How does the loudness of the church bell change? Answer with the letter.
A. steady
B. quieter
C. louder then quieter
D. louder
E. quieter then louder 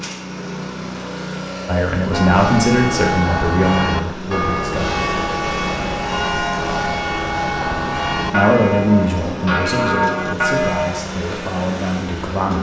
A.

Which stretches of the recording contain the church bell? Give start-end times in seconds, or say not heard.
2.1-11.0.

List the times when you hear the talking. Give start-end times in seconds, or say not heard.
1.6-5.0, 8.3-12.5.